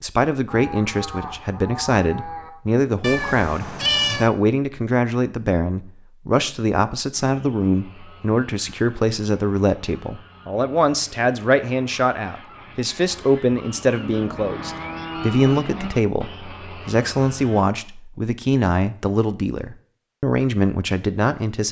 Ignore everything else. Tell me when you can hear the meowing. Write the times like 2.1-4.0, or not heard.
3.0-4.3.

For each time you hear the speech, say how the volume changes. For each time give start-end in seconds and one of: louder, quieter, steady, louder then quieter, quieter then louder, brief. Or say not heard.
0.0-21.6 steady.